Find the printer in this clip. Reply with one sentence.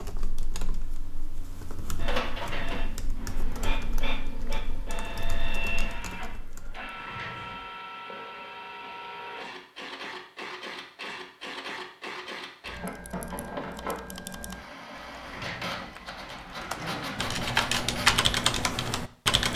The printer can be heard from 1.9 to 18.1 s.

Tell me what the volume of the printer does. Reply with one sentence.
The loudness of the printer stays about the same.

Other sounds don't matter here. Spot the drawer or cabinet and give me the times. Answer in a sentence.
The drawer or cabinet can be heard from 2.3 to 3.8 s, from 7.0 to 7.8 s and from 15.2 to 17.4 s.